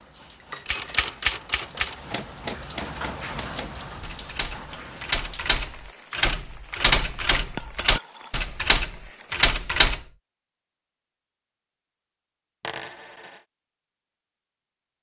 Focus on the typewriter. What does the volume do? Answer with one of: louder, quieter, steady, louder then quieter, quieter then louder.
quieter then louder.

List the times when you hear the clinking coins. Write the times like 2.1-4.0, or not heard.
0.3-1.1, 7.5-8.3, 12.6-13.4.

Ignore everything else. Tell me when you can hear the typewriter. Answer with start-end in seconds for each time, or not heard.
0.7-10.0.